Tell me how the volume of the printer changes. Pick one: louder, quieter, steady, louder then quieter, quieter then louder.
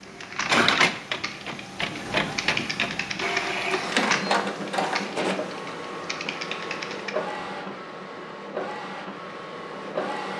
quieter.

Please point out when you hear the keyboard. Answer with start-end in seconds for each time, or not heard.
0.0-7.4.